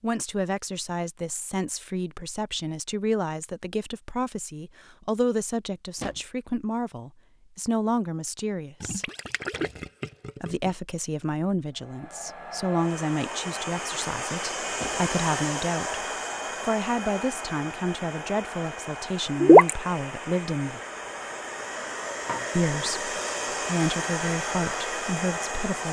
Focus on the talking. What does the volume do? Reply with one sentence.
The loudness of the talking stays about the same.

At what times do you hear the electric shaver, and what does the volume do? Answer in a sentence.
The electric shaver can't be heard in this clip.